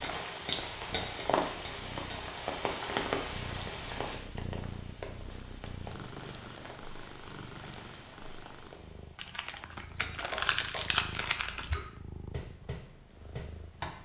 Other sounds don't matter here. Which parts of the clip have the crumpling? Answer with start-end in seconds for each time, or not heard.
9.2-11.8.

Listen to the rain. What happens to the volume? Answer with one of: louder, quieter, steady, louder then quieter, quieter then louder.
quieter.